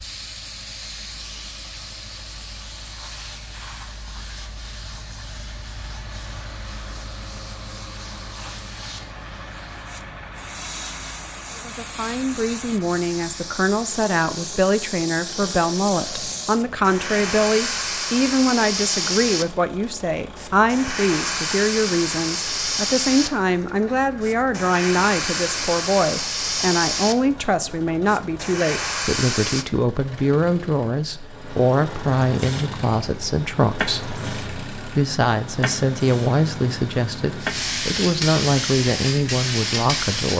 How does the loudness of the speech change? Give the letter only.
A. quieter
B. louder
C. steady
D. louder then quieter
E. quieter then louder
C.